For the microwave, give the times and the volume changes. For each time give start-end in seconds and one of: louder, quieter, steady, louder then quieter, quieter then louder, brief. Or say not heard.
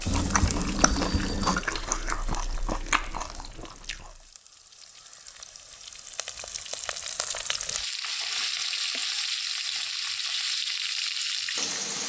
not heard.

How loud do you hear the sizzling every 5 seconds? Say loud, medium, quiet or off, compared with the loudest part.
quiet, loud, loud.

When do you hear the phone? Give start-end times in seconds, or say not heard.
0.1-1.6.